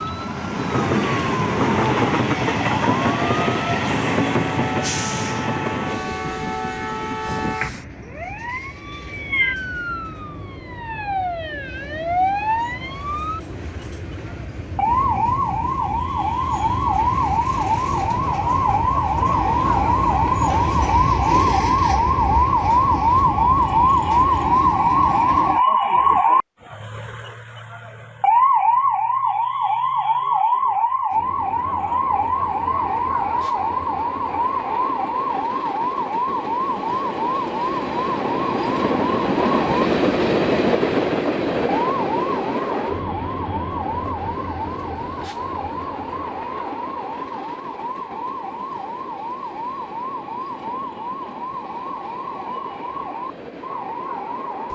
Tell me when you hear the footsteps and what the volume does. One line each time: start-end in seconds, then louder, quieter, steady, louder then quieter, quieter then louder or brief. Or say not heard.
not heard.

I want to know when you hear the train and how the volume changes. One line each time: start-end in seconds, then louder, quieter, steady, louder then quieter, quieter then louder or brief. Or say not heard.
0.0-25.6 quieter then louder
31.1-54.7 louder then quieter.